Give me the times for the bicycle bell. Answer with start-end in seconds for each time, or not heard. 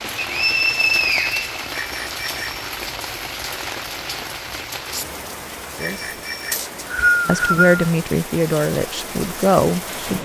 1.7-2.6, 5.8-6.6.